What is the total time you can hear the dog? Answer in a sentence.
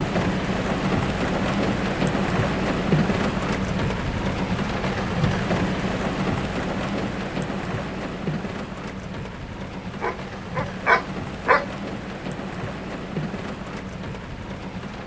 The dog can be heard for 2 seconds in total.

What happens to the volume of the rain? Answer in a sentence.
The loudness of the rain goes down.